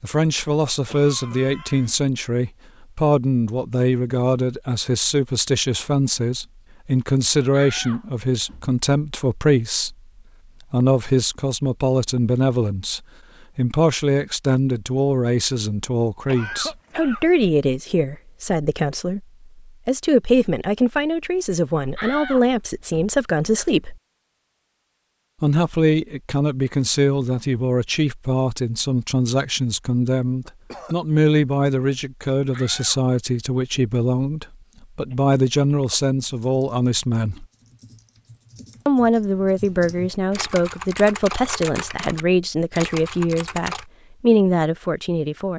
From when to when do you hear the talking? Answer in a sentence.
The talking can be heard from 0.0 to 9.9 s, from 10.7 to 23.9 s, from 25.4 to 37.5 s and from 38.9 to 45.5 s.